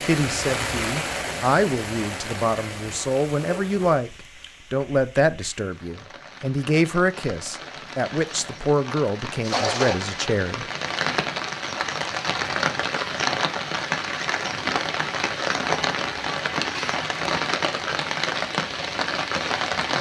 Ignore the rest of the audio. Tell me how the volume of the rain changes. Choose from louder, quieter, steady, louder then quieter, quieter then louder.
quieter then louder.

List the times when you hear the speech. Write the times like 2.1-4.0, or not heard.
0.0-4.1, 4.7-10.7.